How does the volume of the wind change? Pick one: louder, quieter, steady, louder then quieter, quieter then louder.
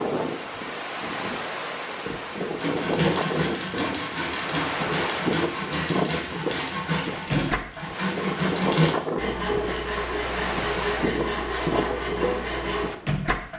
steady.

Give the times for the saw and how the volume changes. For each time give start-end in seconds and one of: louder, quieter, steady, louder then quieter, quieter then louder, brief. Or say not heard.
2.5-12.9 steady.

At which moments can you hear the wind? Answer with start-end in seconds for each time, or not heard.
0.0-13.5.